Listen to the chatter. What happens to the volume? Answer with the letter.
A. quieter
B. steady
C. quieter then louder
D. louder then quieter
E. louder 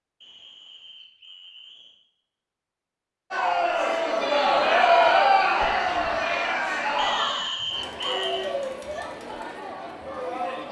A.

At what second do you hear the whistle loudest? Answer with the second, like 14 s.
8 s.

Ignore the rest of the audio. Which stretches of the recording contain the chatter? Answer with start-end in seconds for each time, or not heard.
3.3-10.6.